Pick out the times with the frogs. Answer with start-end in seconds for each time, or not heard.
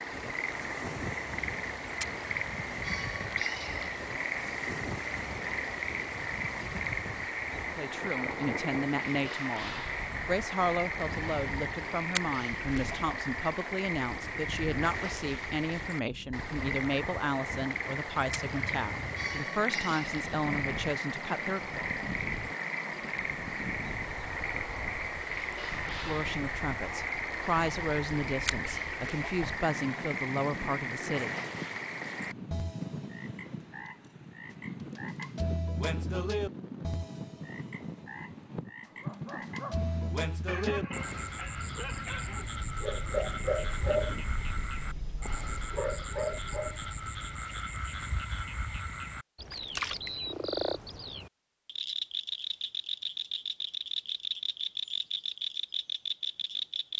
0.0-56.9.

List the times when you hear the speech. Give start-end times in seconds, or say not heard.
7.8-21.8, 25.9-31.4.